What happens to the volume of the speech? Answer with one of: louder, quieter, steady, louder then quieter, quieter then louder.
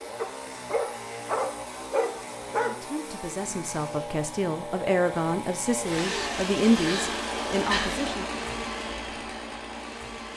louder then quieter.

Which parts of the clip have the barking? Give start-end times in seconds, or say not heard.
0.1-2.8.